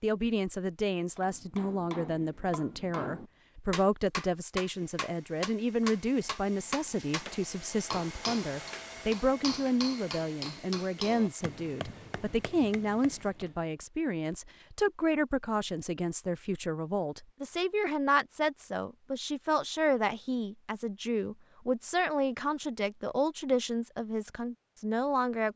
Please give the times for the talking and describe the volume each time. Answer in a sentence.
The talking can be heard from 0.0 to 25.5 s, at a steady volume.